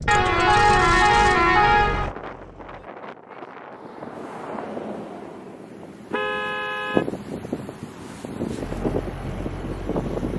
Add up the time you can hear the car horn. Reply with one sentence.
You can hear the car horn for 3 seconds altogether.